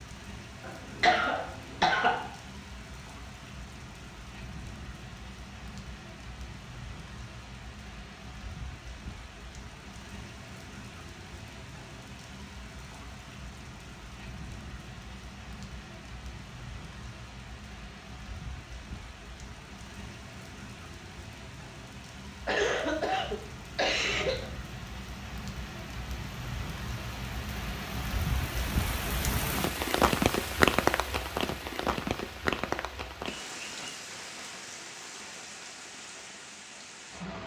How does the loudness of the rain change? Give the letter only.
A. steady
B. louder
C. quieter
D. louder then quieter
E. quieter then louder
B.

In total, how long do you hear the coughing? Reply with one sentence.
You can hear the coughing for 4 seconds altogether.